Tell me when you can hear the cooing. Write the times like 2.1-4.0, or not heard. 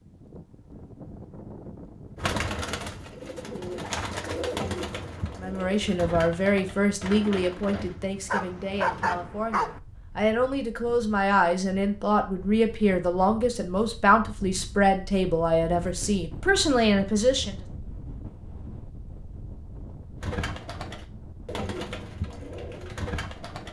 2.1-8.0, 20.2-23.6.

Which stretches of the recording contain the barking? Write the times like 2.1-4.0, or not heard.
8.2-9.8.